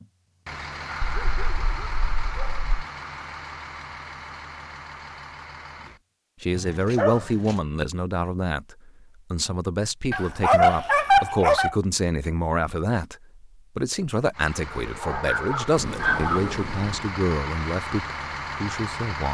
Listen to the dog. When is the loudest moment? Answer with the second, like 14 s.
11 s.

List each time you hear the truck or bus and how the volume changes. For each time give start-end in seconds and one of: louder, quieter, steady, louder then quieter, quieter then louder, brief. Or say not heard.
0.0-6.0 quieter
14.3-19.2 louder.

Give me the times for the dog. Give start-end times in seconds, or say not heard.
1.0-2.6, 6.5-7.5, 10.1-11.8, 14.6-16.7.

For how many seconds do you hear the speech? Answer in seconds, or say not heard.
13 s.